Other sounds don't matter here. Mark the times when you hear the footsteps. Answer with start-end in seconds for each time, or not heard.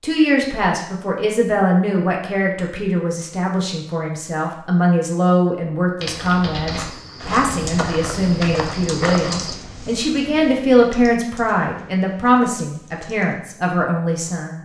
6.7-9.6.